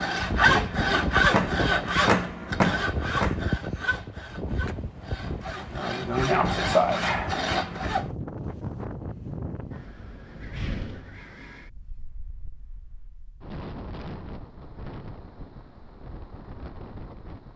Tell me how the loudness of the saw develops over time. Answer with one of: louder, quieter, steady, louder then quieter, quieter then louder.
quieter then louder.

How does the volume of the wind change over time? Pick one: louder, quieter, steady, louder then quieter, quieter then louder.
quieter.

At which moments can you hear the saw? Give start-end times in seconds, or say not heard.
0.0-8.1.